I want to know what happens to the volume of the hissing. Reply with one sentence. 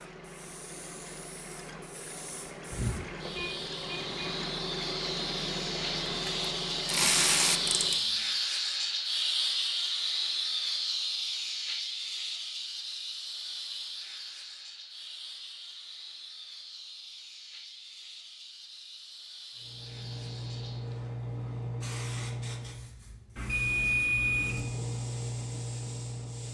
The volume of the hissing goes up, then down.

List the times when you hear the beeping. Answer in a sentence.
The beeping can be heard from 2.7 to 4.3 s and from 23.4 to 24.6 s.